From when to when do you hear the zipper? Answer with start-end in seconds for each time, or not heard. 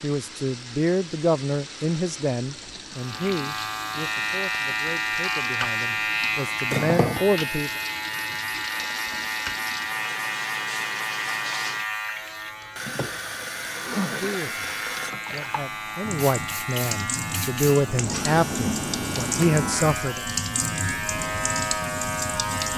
13.8-14.6.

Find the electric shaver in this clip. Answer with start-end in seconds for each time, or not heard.
3.0-22.7.